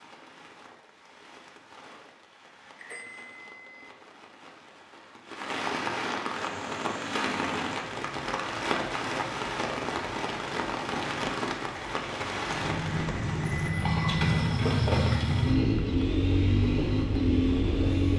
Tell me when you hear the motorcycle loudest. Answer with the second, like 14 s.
15 s.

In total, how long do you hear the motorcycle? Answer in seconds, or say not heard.
12 s.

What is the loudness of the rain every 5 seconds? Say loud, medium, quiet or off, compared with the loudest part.
quiet, loud, loud, quiet.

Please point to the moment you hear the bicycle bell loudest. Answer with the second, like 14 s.
14 s.